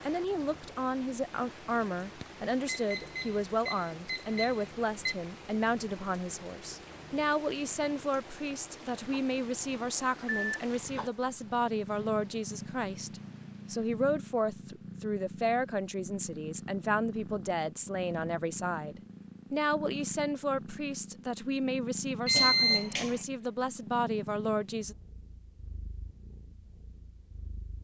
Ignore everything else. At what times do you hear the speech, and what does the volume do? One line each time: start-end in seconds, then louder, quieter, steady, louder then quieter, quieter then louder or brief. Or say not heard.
0.0-24.9 steady.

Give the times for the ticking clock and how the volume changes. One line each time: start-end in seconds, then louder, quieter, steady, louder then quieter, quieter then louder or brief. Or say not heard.
not heard.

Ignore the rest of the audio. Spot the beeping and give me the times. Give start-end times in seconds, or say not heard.
2.7-5.2, 10.2-10.8, 22.2-23.2.